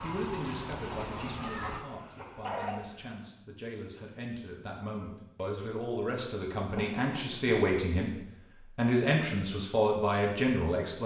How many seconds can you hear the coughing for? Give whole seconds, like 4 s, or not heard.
3 s.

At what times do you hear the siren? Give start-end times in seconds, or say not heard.
0.0-3.2.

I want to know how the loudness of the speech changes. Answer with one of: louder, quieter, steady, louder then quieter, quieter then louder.
louder.